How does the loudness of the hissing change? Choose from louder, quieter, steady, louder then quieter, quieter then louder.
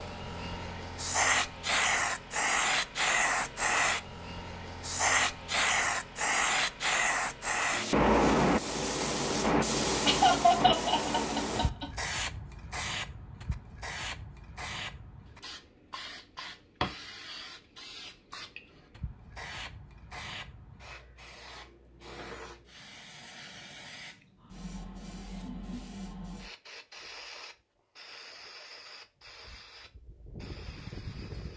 quieter.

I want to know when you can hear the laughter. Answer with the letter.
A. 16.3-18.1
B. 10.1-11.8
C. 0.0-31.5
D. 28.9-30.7
B.